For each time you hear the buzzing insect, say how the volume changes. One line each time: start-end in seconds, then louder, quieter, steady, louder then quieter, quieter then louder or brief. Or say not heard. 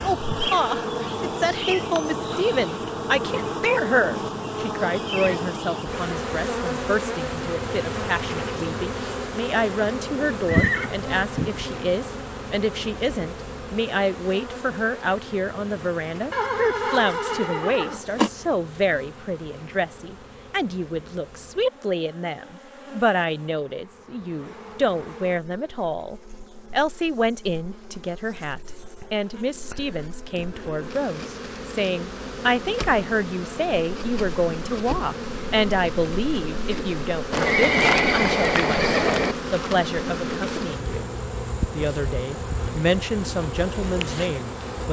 0.0-44.8 quieter then louder.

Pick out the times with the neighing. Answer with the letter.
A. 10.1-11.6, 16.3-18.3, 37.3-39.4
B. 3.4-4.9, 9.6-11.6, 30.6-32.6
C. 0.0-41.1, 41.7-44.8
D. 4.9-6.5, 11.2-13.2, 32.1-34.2
A.